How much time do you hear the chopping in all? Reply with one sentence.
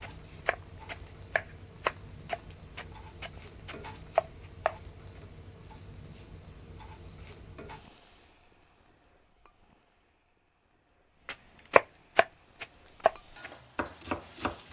You can hear the chopping for 8 seconds altogether.